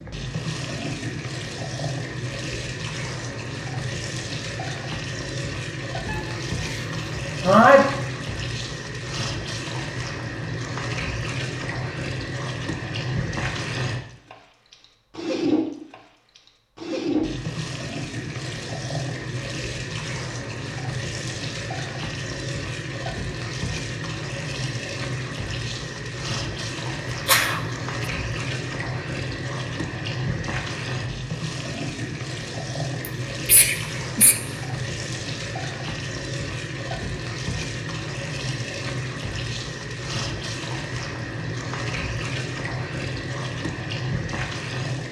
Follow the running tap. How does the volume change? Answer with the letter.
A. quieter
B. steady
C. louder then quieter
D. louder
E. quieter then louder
B.